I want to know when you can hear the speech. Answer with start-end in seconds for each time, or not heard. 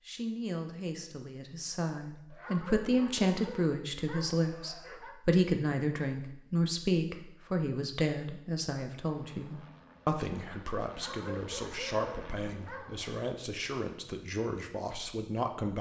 0.1-15.7.